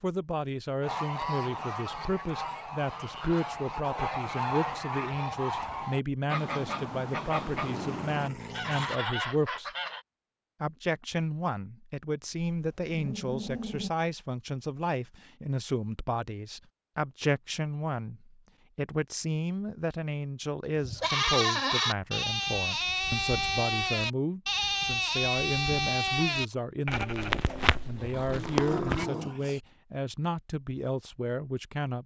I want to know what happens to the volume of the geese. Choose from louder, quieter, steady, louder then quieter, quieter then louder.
steady.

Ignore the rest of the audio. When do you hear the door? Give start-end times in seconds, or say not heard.
not heard.